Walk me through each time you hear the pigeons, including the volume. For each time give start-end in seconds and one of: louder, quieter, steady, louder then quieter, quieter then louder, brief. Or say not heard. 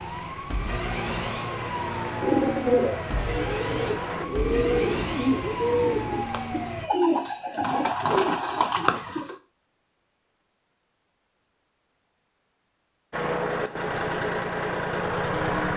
2.1-9.3 steady.